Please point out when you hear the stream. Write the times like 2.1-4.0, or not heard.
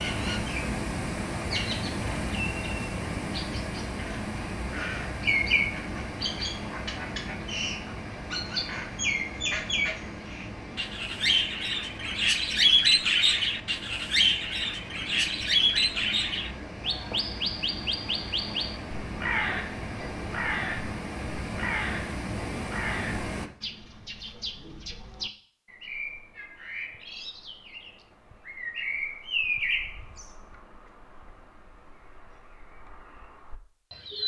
0.0-23.5.